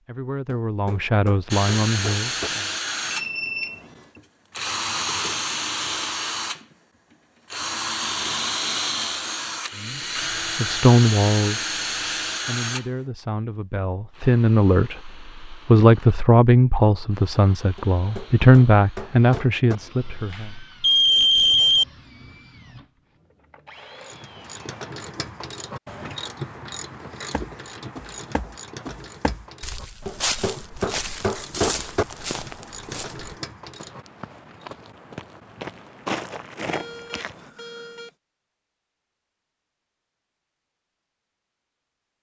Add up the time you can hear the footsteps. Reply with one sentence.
You can hear the footsteps for 10 seconds altogether.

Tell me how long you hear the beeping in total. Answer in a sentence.
The beeping can be heard for 4 seconds in total.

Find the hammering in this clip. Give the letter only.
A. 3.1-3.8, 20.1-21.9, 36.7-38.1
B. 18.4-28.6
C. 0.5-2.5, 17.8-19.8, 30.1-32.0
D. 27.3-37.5
C.